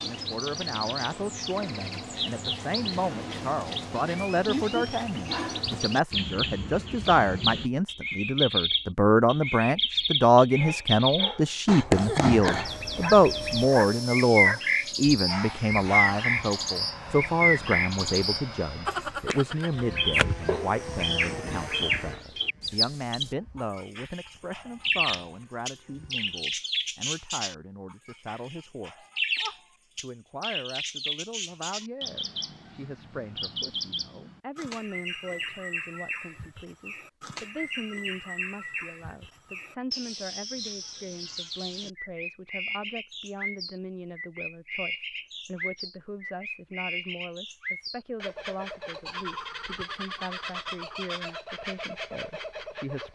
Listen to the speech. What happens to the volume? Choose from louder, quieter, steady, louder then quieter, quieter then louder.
quieter.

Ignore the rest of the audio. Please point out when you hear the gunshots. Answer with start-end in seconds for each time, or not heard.
not heard.